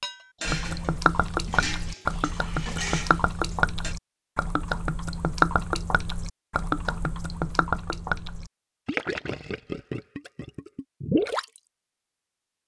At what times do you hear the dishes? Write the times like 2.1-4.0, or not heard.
0.0-4.0.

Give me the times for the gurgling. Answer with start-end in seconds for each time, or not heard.
0.5-11.4.